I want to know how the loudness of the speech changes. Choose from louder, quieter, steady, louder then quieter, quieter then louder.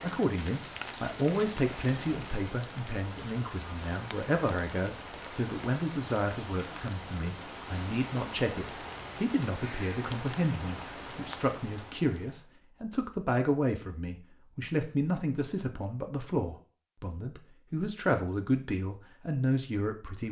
steady.